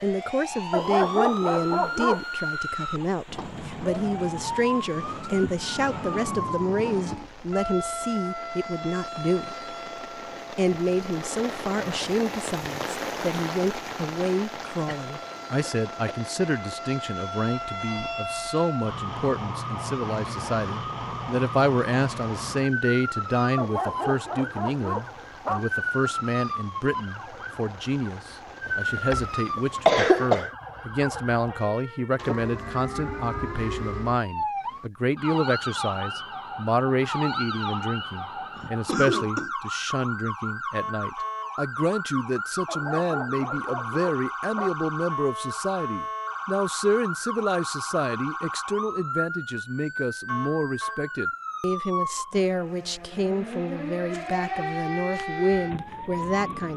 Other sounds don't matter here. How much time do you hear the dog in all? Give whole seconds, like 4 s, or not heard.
6 s.